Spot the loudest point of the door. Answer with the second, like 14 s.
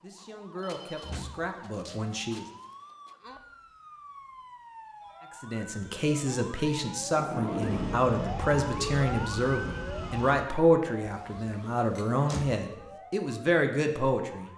8 s.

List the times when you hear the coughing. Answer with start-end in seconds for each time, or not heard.
not heard.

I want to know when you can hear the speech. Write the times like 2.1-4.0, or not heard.
0.0-2.5, 5.4-14.5.